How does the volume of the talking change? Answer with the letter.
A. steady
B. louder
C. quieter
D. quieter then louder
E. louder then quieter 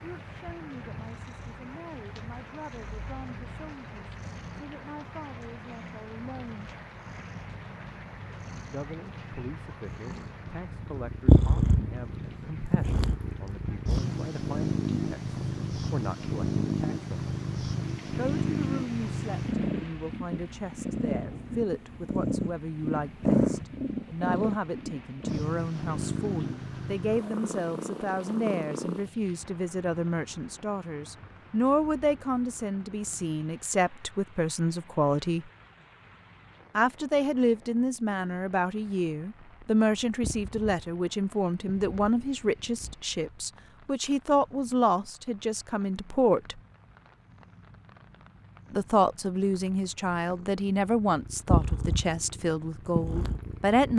B.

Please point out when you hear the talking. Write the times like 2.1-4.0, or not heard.
0.0-6.7, 8.7-17.4, 18.1-35.5, 36.8-46.6, 48.7-53.9.